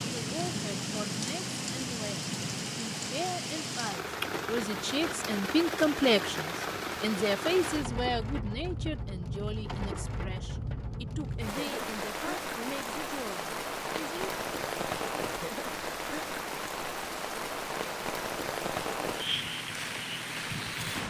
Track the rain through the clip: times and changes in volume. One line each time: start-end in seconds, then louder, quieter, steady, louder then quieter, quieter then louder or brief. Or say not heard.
0.0-21.0 steady.